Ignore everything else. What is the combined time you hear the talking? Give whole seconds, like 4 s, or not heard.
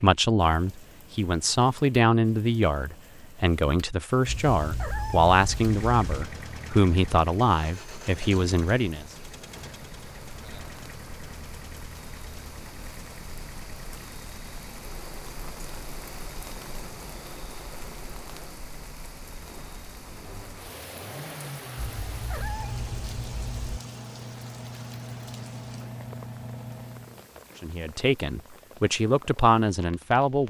12 s.